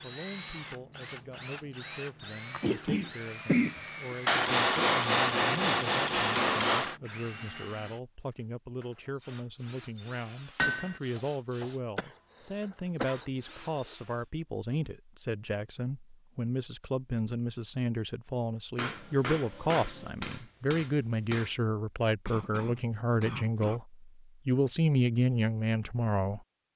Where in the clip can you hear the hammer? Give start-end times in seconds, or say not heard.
4.2-7.0, 10.6-11.0, 18.8-21.6.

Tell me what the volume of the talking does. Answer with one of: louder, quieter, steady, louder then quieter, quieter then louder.
louder.